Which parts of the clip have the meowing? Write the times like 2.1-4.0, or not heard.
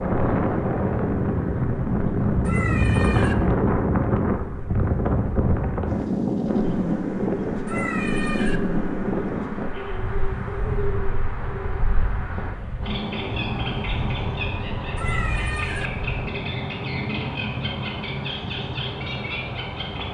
2.5-3.4, 7.7-8.6, 14.9-15.9.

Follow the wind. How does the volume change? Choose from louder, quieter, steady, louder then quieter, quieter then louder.
quieter.